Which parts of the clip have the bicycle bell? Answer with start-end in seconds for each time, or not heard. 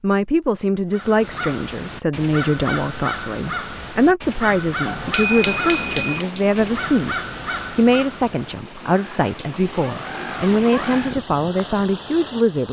4.8-6.2.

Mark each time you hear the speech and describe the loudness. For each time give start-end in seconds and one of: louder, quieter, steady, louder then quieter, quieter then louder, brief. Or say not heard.
0.0-12.6 steady.